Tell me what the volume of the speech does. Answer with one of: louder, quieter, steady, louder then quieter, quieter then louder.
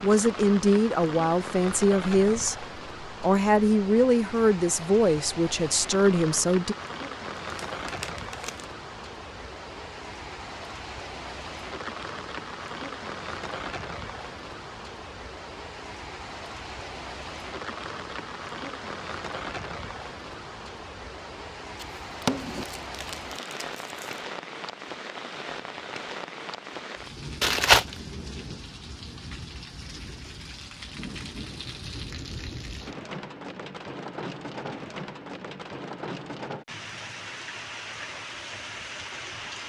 steady.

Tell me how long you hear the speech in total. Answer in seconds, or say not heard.
7 s.